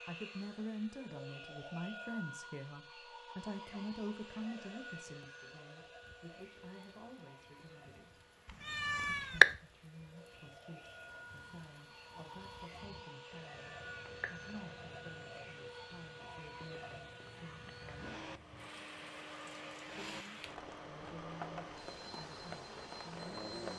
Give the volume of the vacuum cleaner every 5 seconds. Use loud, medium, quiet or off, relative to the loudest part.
loud, medium, loud, loud, loud.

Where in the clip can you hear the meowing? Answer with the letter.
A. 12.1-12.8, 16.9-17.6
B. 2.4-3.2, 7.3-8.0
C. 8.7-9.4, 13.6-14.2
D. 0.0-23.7
C.